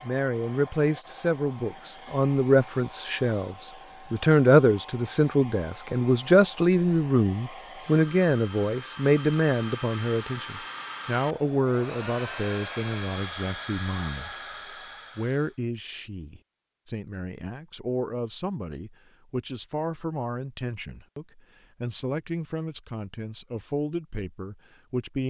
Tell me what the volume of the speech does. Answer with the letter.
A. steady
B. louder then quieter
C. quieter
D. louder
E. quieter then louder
C.